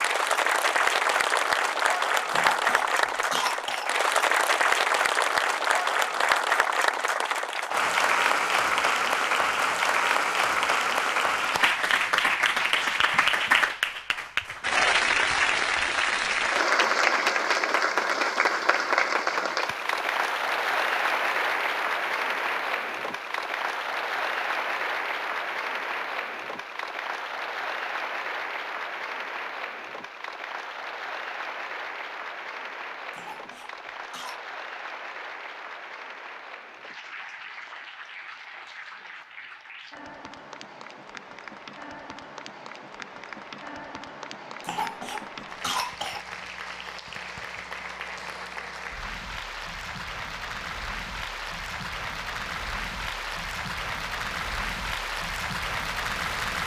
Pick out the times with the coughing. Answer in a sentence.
You can hear the coughing from 2.3 to 3.9 s, from 33.1 to 34.4 s and from 44.6 to 46.2 s.